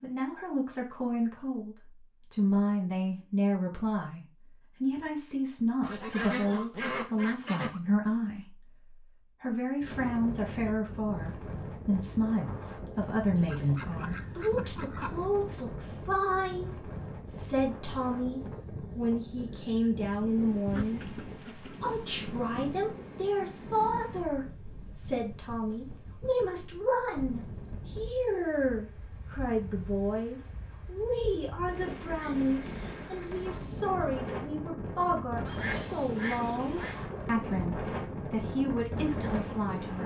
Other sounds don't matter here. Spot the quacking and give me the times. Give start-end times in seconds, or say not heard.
5.8-7.8, 13.3-15.2, 20.6-22.0, 35.5-37.0.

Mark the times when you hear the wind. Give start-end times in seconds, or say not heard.
9.8-40.0.